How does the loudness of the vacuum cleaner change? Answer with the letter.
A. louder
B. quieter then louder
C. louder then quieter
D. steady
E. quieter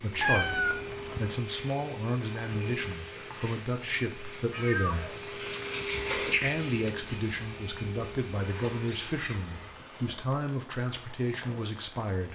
C.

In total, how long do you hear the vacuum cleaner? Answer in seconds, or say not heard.
10 s.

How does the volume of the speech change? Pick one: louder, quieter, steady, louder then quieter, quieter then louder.
steady.